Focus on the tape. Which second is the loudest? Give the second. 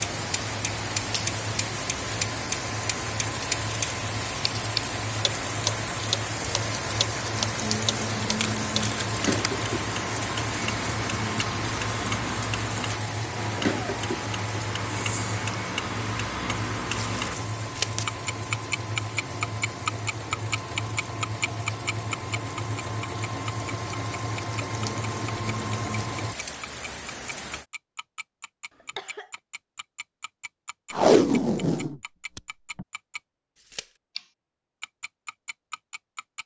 31 s.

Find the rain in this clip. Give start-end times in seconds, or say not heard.
0.0-27.6.